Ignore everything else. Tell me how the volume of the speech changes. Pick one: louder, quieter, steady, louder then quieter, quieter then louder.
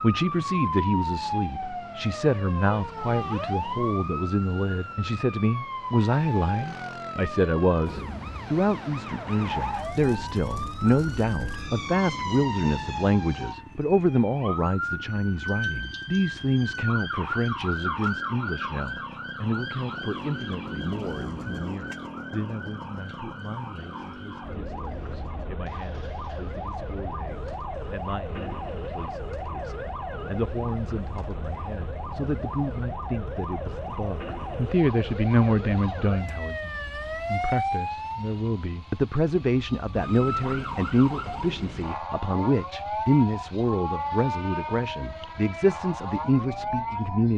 quieter then louder.